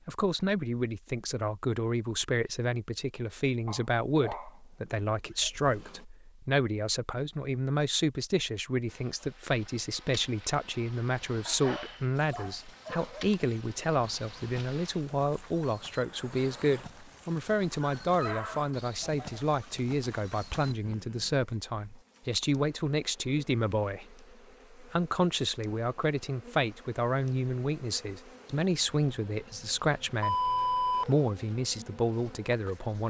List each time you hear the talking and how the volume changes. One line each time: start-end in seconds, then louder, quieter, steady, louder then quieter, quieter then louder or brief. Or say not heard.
0.1-33.0 steady.